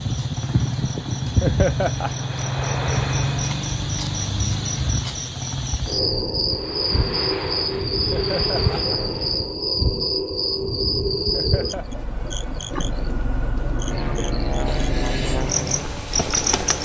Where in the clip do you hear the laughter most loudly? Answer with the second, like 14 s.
2 s.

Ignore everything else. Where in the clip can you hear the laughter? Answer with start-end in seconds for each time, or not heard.
1.4-2.2, 8.1-8.9, 11.3-11.8.